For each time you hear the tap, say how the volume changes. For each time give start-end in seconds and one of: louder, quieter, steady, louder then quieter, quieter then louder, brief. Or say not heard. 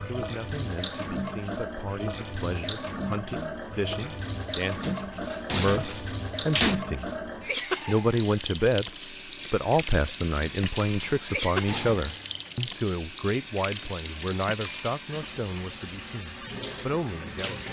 0.0-17.6 steady.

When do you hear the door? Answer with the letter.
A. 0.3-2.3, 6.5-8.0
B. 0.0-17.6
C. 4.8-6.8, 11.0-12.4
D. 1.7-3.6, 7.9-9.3
C.